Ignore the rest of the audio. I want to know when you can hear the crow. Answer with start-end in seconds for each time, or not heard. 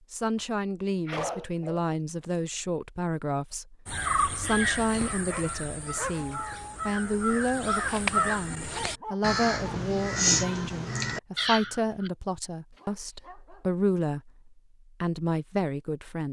3.9-12.1.